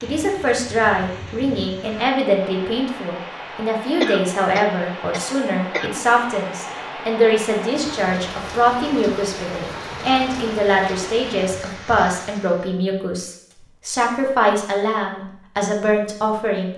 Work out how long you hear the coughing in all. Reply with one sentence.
You can hear the coughing for 2 seconds altogether.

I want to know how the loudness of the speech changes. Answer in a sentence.
The loudness of the speech stays about the same.